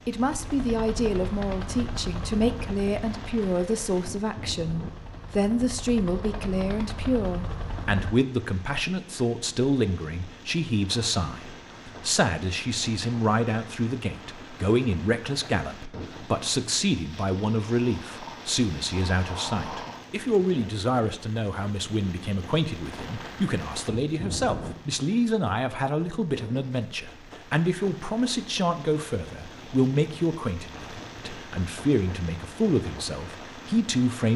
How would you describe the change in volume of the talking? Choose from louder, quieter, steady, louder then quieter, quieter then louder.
steady.